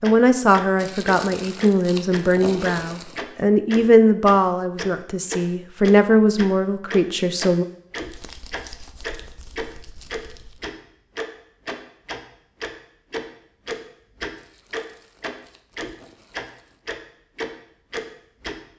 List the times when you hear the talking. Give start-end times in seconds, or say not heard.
0.0-7.7.